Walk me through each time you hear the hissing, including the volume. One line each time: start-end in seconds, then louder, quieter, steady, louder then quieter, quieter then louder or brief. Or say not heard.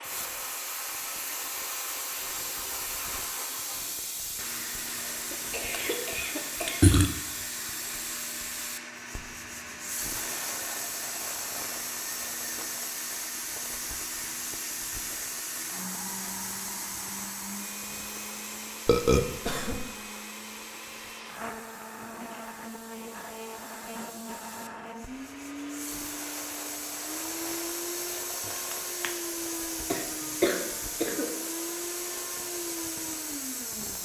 0.0-33.9 quieter then louder.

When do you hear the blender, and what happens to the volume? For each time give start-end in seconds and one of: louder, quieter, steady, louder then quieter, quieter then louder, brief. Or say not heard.
0.0-33.9 steady.